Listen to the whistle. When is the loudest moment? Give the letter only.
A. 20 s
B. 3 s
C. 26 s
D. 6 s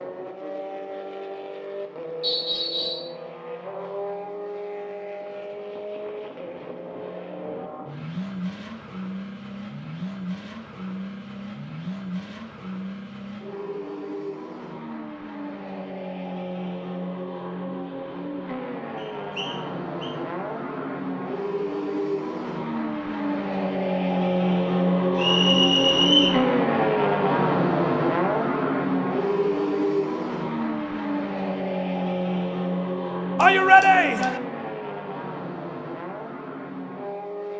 C.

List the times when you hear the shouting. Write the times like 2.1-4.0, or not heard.
33.4-34.4.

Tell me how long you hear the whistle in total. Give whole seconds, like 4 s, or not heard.
3 s.